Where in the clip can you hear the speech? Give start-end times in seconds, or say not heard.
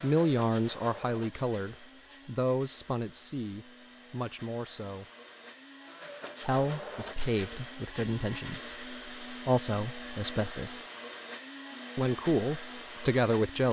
0.0-5.0, 6.4-10.8, 11.9-13.6.